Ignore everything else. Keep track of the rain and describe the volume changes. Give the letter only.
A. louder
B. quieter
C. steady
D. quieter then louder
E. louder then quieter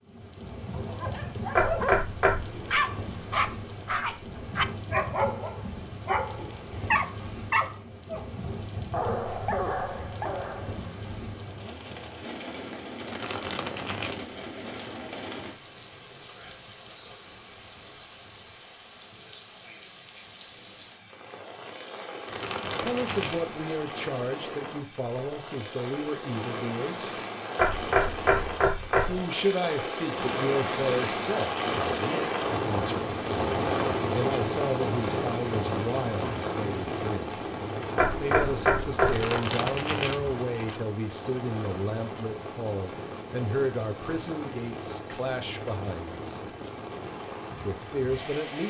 E.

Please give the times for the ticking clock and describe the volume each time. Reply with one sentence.
The ticking clock can't be heard in this clip.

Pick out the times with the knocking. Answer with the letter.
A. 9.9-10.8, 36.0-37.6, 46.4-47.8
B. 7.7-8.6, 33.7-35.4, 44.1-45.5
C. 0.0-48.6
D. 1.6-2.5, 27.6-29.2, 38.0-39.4
D.